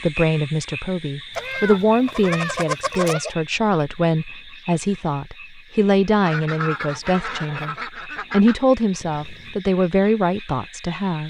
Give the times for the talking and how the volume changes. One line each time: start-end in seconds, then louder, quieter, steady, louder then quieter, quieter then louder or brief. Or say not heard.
0.0-11.2 steady.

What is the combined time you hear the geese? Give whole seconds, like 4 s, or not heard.
4 s.